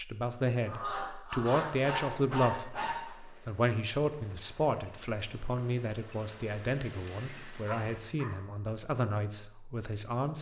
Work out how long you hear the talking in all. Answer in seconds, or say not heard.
10 s.